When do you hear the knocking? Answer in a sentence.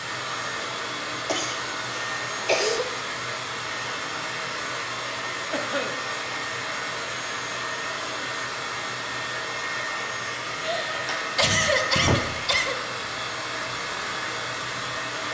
You can't hear the knocking here.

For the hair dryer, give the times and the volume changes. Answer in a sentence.
The hair dryer can be heard from 0.0 to 15.2 s, at a steady volume.